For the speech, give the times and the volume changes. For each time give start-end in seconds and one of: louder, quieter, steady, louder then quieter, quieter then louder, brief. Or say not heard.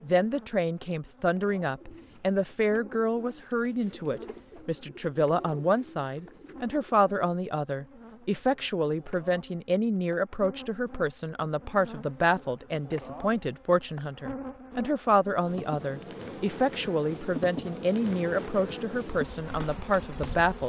0.0-20.6 steady.